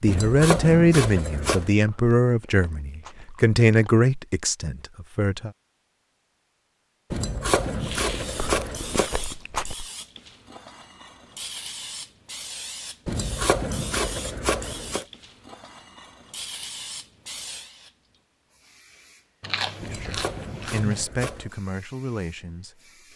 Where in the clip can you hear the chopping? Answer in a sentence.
The chopping can be heard from 0.1 to 1.7 s, from 7.1 to 9.1 s, from 13.1 to 15.1 s and from 19.8 to 21.6 s.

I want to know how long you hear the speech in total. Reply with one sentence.
The speech can be heard for 9 seconds in total.